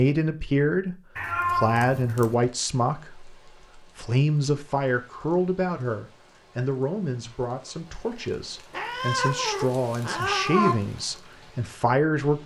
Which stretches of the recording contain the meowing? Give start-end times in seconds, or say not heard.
1.1-2.4, 8.7-10.8.